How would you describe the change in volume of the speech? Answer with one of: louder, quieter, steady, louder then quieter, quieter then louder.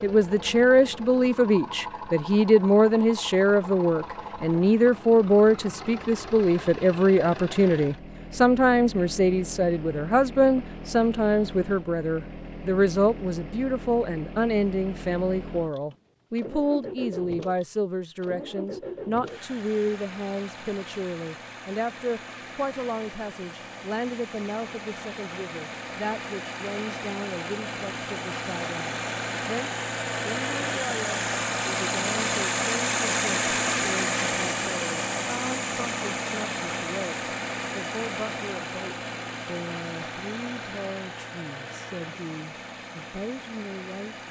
quieter.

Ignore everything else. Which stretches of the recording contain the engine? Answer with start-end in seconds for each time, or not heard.
0.0-44.2.